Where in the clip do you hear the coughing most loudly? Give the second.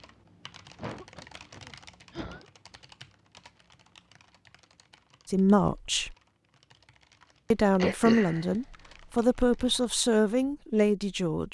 8 s.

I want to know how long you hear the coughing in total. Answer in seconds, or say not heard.
3 s.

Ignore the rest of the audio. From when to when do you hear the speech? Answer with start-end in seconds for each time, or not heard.
5.2-6.2, 7.5-11.4.